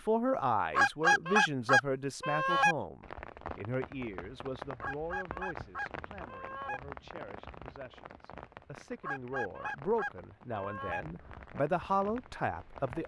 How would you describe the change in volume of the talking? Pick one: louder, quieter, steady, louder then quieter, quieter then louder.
quieter then louder.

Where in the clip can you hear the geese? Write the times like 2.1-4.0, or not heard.
0.7-2.8, 4.8-6.8, 9.0-11.0.